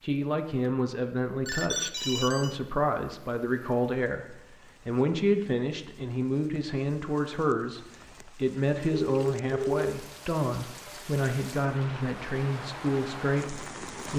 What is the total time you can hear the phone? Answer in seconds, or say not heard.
2 s.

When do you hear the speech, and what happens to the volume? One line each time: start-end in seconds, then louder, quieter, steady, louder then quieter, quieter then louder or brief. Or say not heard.
0.0-14.1 steady.